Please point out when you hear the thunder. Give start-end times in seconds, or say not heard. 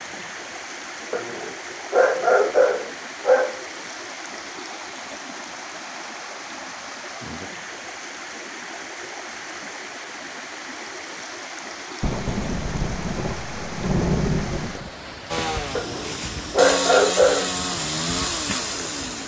12.0-14.9.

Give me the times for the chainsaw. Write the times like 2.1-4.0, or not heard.
15.2-19.2.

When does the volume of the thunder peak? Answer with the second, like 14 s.
14 s.